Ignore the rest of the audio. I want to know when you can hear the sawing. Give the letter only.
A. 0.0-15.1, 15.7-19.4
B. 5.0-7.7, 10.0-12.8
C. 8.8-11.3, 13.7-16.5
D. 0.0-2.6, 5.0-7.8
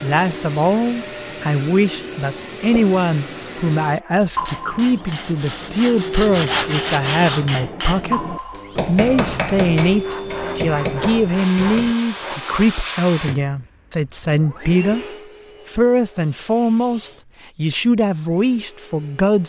B.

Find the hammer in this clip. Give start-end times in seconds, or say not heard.
4.3-11.9.